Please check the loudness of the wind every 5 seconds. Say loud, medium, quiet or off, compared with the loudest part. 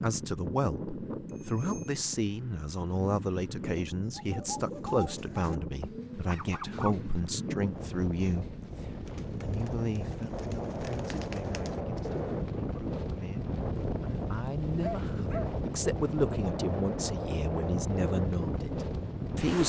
medium, medium, loud, loud.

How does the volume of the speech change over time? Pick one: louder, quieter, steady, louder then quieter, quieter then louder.
quieter then louder.